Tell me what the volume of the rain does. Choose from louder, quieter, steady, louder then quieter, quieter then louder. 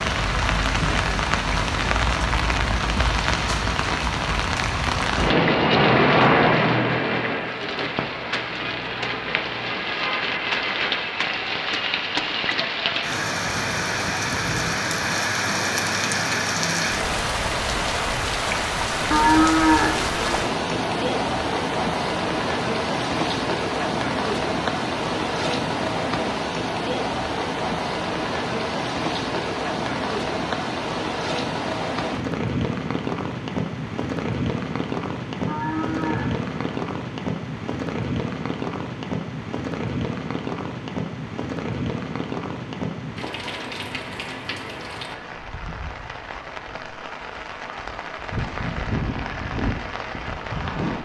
quieter.